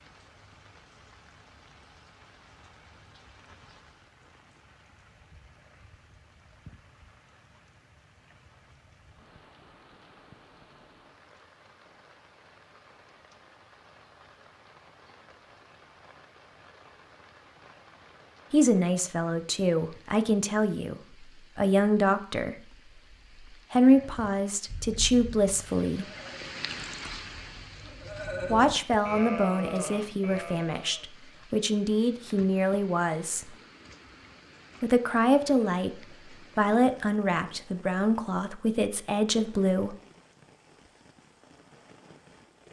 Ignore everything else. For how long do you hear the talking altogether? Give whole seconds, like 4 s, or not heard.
17 s.